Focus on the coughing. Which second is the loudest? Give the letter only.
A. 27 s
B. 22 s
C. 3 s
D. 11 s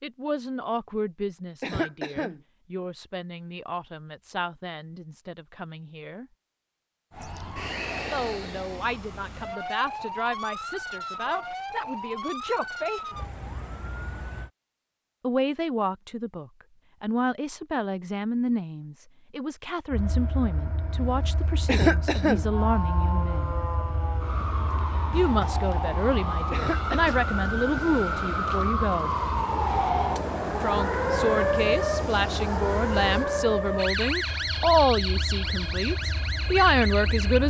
B.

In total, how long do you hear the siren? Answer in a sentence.
The siren can be heard for 22 seconds in total.